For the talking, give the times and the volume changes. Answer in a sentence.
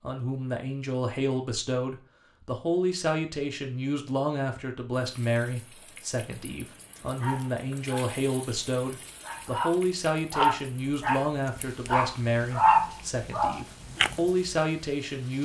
The talking can be heard from 0.0 to 15.4 s, at a steady volume.